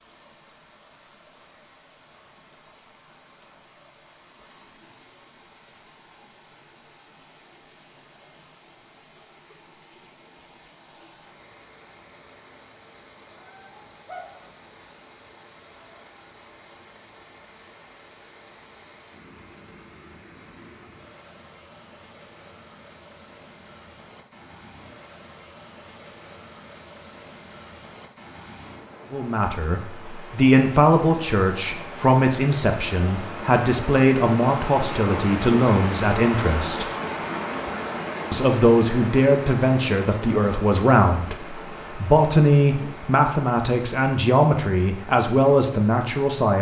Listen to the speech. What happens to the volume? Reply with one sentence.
The volume of the speech stays about the same.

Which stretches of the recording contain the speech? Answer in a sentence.
You can hear the speech from 29.1 to 36.9 s and from 38.3 to 46.5 s.